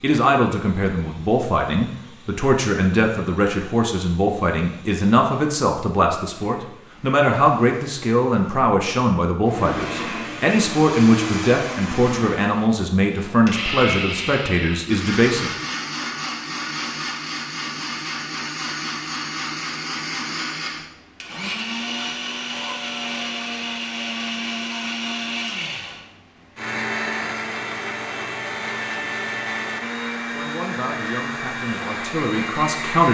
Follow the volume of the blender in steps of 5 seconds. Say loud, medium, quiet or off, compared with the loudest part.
quiet, medium, loud, loud, loud, loud, loud.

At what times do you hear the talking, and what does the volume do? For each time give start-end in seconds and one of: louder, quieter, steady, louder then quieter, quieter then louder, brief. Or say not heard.
0.0-15.6 steady
30.3-33.0 brief.